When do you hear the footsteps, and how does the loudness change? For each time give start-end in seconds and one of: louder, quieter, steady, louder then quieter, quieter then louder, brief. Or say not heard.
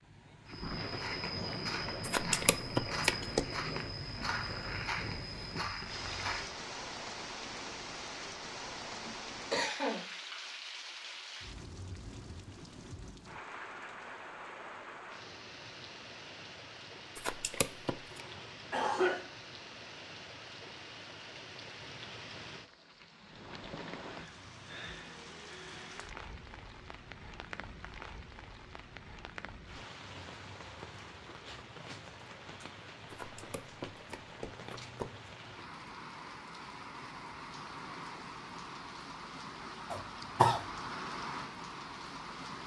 0.5-6.6 steady.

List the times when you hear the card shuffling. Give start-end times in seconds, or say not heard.
2.0-3.5, 17.1-17.9, 33.1-35.1.